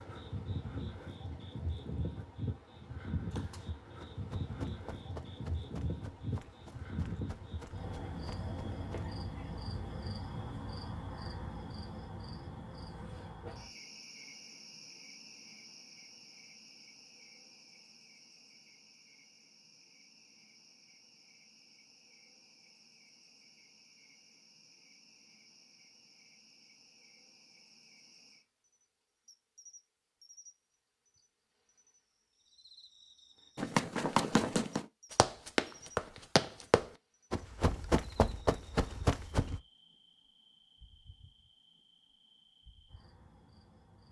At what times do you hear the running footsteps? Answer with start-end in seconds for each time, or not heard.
3.3-9.1, 33.5-39.6.